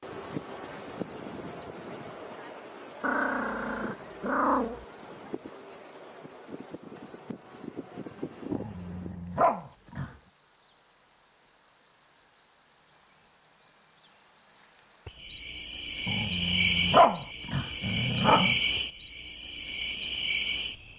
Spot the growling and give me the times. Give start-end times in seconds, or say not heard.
3.0-4.8, 8.5-10.2, 16.1-18.6.